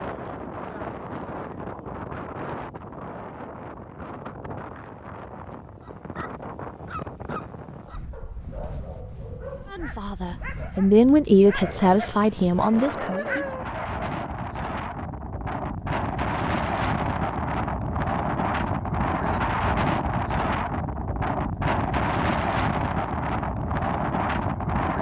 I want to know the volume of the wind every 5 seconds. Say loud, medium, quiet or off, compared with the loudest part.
medium, quiet, medium, loud, loud.